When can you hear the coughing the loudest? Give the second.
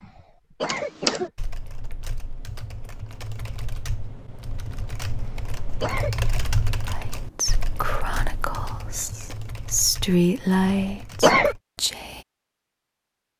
11 s.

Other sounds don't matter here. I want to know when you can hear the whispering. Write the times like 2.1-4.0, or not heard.
6.9-12.2.